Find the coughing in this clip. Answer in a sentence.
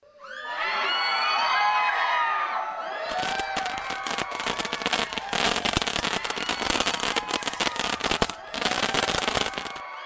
You can't hear the coughing here.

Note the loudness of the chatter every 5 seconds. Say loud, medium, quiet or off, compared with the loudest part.
loud, medium.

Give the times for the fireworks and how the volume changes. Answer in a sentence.
You can hear the fireworks from 3.0 to 9.8 s, getting louder.